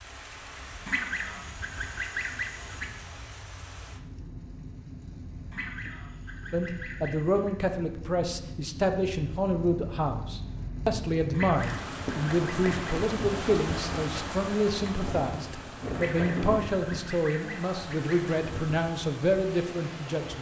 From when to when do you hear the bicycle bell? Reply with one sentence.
You can't hear the bicycle bell here.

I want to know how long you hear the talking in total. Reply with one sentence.
The talking can be heard for 14 seconds in total.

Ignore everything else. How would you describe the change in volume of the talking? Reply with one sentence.
The volume of the talking stays about the same.